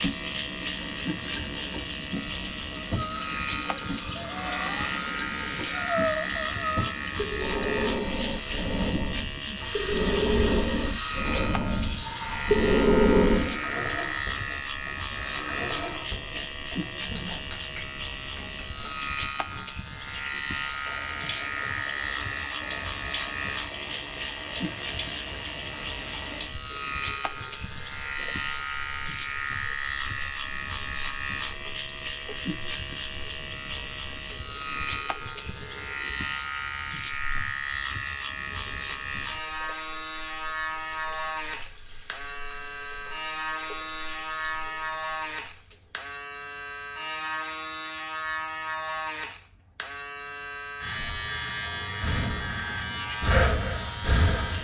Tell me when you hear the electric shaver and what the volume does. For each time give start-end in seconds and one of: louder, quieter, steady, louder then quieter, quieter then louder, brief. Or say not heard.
0.0-54.5 steady.